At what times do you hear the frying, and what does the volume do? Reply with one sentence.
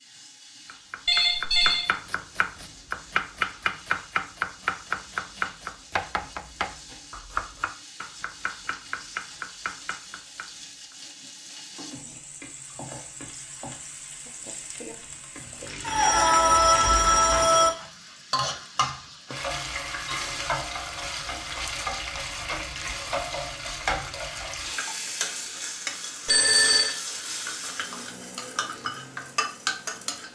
The frying can be heard from 0.0 to 30.3 s, getting louder.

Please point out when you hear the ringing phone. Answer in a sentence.
You can hear the ringing phone from 1.1 to 1.9 s, from 15.8 to 17.7 s and from 26.2 to 26.9 s.